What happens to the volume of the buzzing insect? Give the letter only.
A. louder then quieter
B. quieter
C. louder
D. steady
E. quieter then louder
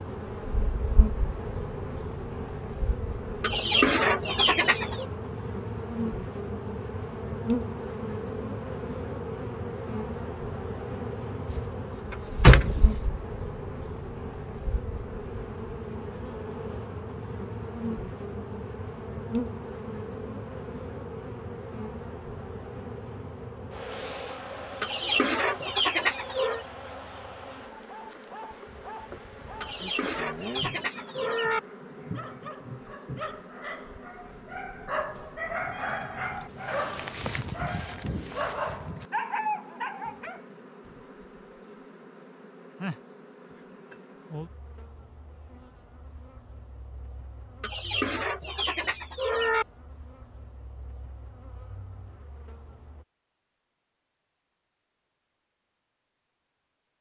B.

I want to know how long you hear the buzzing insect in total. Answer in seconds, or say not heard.
53 s.